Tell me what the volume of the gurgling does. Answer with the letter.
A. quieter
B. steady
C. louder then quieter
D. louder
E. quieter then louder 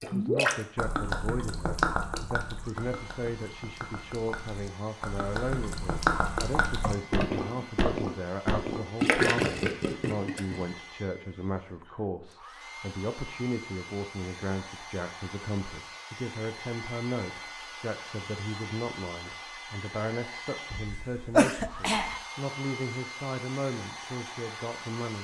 E.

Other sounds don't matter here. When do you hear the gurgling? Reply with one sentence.
You can hear the gurgling from 0.0 to 10.7 s.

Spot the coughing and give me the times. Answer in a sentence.
You can hear the coughing from 6.8 to 7.8 s and from 20.7 to 22.2 s.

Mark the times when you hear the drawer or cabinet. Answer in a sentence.
The drawer or cabinet can't be heard in this clip.